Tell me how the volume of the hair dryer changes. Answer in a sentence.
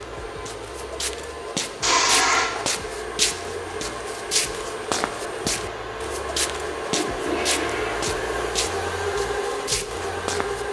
The volume of the hair dryer goes up.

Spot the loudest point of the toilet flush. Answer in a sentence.
The volume of the toilet flush peaks at 2 seconds.